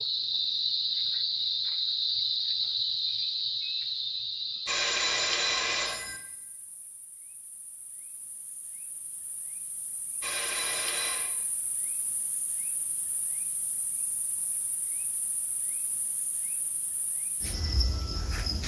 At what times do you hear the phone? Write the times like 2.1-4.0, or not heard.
4.7-6.2, 10.2-11.3.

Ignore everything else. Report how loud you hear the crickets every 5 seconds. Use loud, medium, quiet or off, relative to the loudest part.
loud, quiet, quiet, medium.